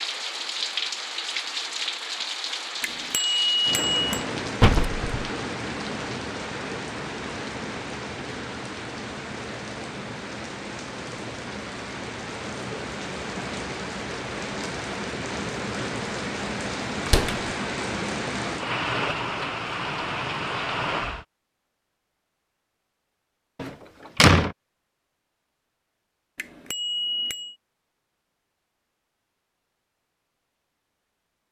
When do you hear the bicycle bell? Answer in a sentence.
The bicycle bell can be heard from 2.8 to 4.2 s and from 26.4 to 27.6 s.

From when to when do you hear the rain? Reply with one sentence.
The rain can be heard from 0.0 to 21.2 s.